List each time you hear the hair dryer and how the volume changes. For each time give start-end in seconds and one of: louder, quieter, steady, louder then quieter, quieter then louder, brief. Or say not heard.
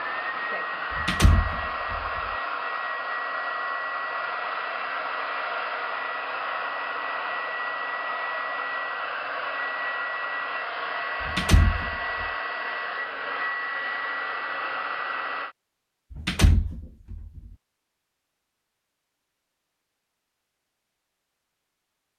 0.0-15.6 steady.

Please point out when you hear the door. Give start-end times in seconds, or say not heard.
0.9-2.2, 11.2-12.2, 16.1-17.4.